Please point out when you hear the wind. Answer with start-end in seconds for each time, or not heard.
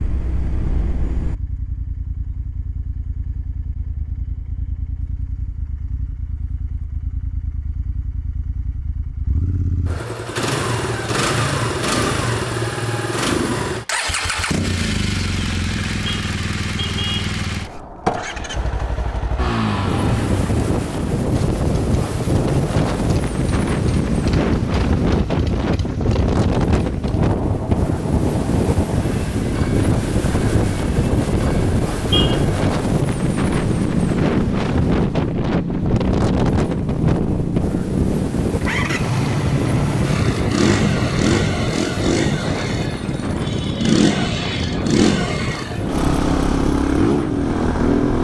19.6-48.2.